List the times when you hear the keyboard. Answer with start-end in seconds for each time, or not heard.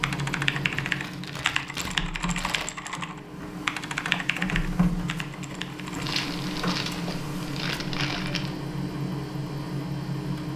0.0-6.2.